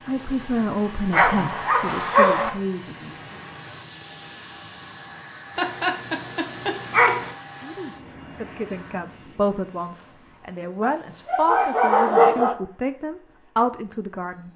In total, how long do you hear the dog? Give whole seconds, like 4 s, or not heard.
5 s.